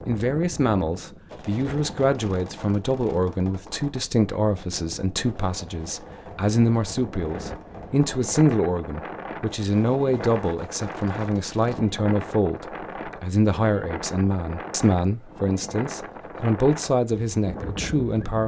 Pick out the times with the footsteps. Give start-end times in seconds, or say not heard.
not heard.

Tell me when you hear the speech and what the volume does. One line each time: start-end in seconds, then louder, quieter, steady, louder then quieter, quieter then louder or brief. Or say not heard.
0.1-18.4 steady.